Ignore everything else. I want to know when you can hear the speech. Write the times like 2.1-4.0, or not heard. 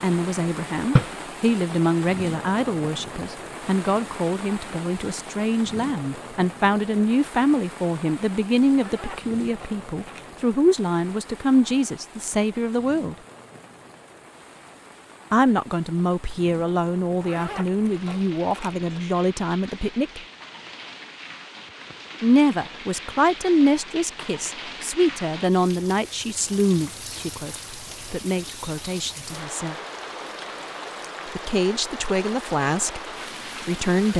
0.0-13.2, 15.3-20.2, 22.2-29.8, 31.4-34.1.